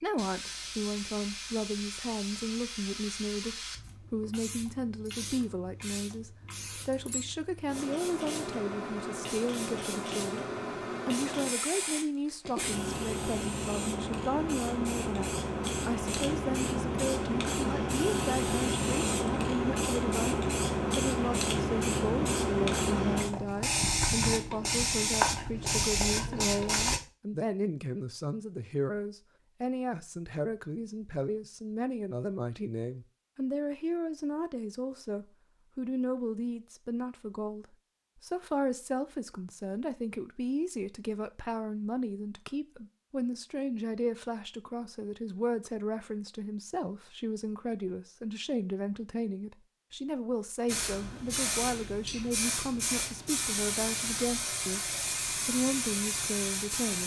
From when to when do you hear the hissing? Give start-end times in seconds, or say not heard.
0.0-27.0, 50.6-57.0.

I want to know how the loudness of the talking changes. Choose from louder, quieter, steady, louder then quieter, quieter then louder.
steady.